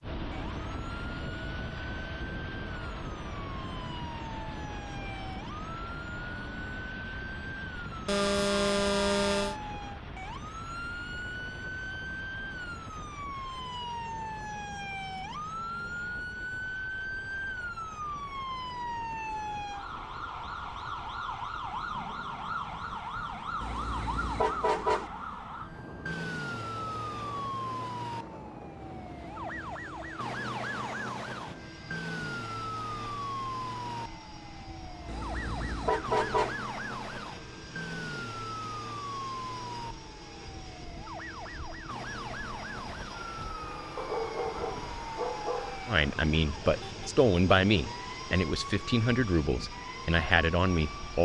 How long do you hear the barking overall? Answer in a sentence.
The barking can be heard for 2 seconds in total.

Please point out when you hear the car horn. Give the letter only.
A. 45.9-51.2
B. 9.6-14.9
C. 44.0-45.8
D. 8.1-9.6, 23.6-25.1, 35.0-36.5
D.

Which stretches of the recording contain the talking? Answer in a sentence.
The talking can be heard from 45.9 to 51.2 s.